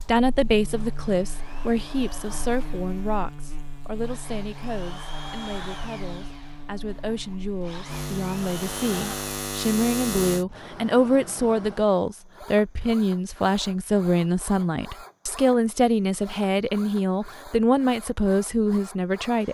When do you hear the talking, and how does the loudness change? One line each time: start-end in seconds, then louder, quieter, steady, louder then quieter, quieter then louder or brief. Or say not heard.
0.1-19.4 quieter then louder.